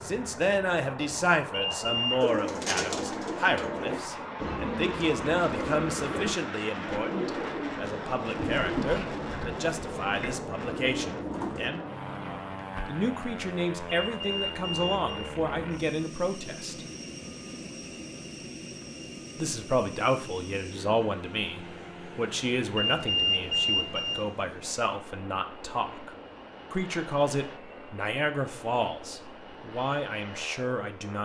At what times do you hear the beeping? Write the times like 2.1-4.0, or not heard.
1.5-2.2, 13.8-15.3, 22.8-24.2.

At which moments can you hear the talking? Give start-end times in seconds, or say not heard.
0.0-11.8, 12.8-16.9, 19.4-26.1, 26.7-31.2.